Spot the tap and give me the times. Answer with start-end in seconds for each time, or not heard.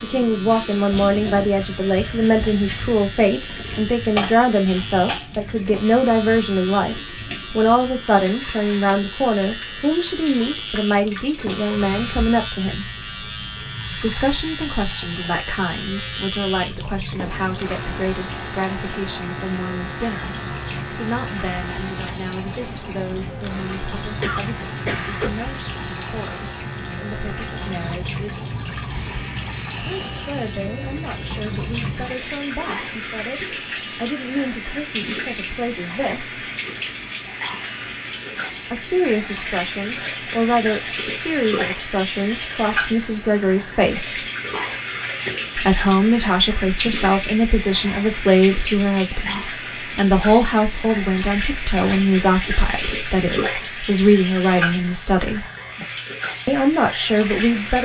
0.0-57.7.